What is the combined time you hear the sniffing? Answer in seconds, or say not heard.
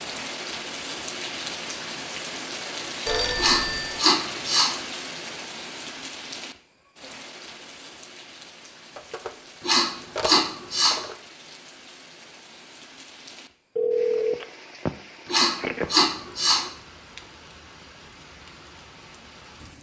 4 s.